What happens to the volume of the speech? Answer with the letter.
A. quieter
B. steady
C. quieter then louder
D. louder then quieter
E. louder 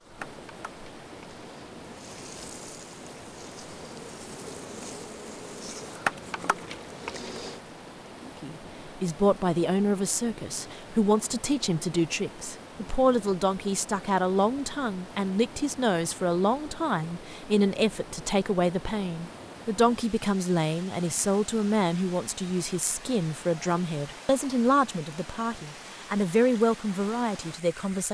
B.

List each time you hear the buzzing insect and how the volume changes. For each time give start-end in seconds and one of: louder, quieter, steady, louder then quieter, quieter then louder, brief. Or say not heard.
0.0-7.6 louder.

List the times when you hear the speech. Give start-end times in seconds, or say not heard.
8.4-28.0.